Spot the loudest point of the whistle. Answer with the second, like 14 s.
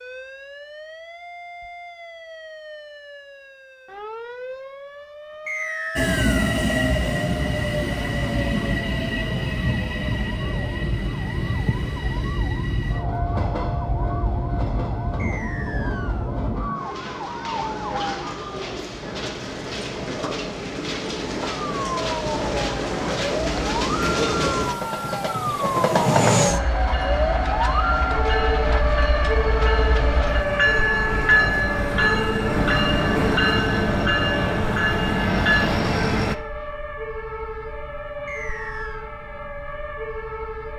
6 s.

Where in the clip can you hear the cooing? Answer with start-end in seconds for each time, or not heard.
not heard.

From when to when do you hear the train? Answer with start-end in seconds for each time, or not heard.
6.0-36.4.